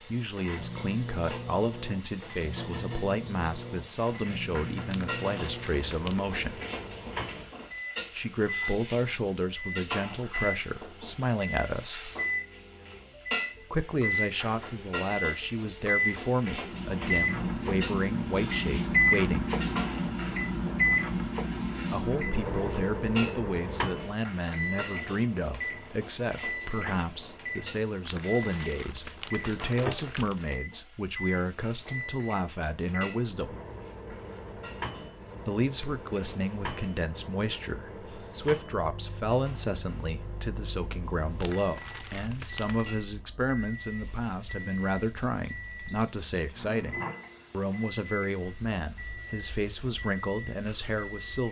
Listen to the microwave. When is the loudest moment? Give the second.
19 s.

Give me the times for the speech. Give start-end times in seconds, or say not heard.
0.0-6.6, 8.1-12.1, 13.7-19.5, 21.9-33.5, 35.5-51.4.